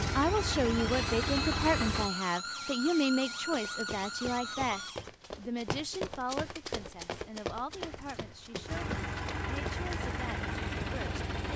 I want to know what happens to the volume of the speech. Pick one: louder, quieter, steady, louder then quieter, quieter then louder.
quieter.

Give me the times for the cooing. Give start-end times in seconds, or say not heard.
not heard.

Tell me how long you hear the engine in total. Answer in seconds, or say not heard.
6 s.